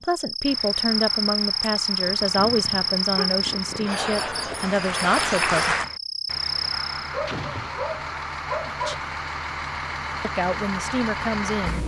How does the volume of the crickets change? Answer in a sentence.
The loudness of the crickets stays about the same.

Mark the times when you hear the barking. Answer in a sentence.
The barking can be heard from 2.0 to 3.9 s and from 7.1 to 8.9 s.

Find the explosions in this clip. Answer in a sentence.
The explosions can be heard from 7.2 to 8.1 s.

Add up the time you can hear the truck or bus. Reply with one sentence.
You can hear the truck or bus for 12 seconds altogether.